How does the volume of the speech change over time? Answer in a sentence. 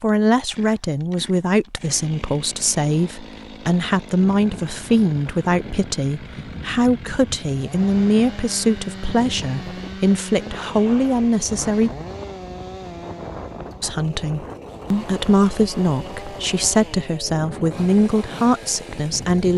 The volume of the speech stays about the same.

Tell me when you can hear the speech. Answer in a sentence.
You can hear the speech from 0.0 to 11.9 s and from 13.8 to 19.5 s.